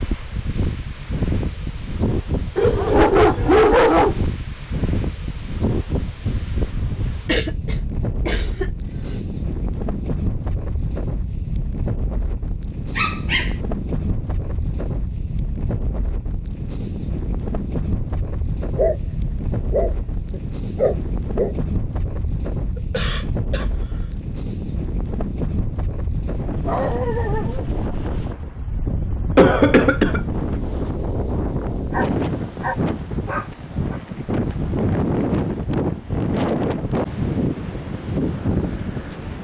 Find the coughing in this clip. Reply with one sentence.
The coughing can be heard from 7.2 to 9.2 s, from 22.8 to 24.1 s and from 29.4 to 30.2 s.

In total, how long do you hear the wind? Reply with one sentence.
The wind can be heard for 39 seconds in total.